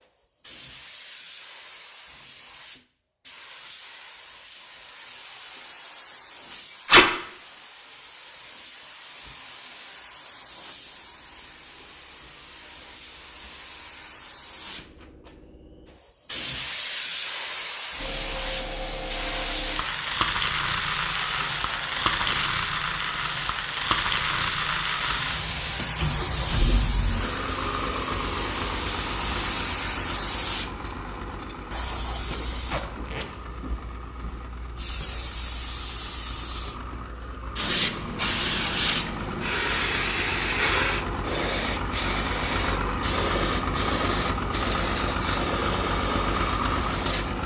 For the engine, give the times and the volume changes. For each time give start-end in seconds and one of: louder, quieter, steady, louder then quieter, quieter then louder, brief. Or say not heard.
17.9-47.4 quieter then louder.